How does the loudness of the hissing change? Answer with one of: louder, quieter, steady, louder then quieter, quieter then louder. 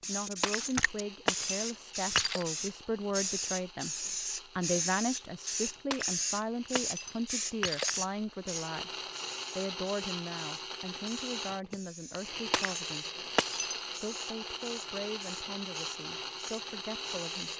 quieter.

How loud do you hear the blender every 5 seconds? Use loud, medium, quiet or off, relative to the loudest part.
quiet, medium, loud, loud.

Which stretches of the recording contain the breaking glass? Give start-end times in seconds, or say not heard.
0.4-2.5, 5.9-8.0, 12.5-13.8.